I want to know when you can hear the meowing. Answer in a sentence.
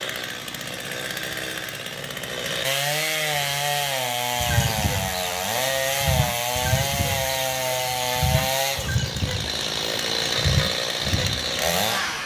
The meowing can't be heard in this clip.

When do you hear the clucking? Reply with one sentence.
You can hear the clucking from 3.3 to 11.7 s.